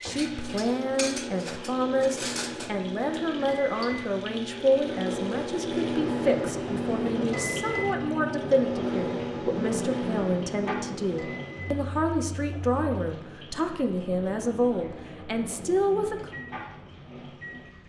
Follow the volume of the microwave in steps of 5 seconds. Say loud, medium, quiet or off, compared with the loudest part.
medium, loud, medium, quiet.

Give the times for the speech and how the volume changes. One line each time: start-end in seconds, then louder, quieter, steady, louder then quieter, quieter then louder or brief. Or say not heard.
0.0-16.4 steady.